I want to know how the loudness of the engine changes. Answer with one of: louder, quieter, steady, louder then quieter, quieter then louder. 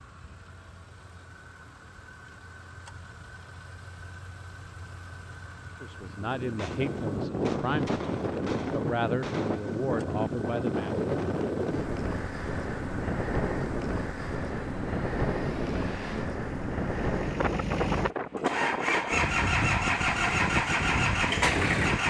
louder.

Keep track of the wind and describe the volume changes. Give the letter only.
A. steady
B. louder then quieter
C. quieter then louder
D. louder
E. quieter
A.